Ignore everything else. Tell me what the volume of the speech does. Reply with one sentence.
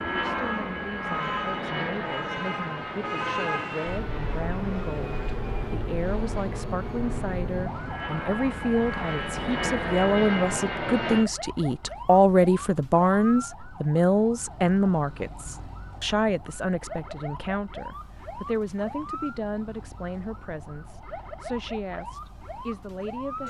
The volume of the speech goes up, then down.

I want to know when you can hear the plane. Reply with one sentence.
You can hear the plane from 0.0 to 11.3 s.